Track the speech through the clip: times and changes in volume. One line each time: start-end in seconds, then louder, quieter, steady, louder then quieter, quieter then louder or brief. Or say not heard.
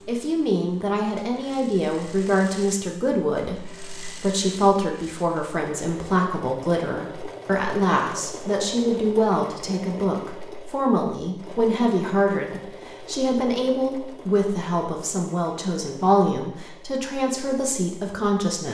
0.1-18.6 steady.